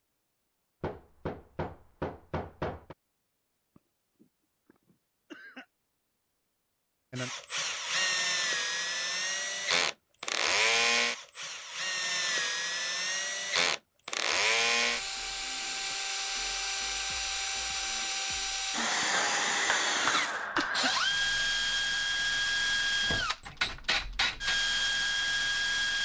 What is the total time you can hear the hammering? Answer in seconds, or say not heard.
4 s.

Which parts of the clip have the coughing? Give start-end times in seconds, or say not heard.
3.8-5.7, 19.0-20.9.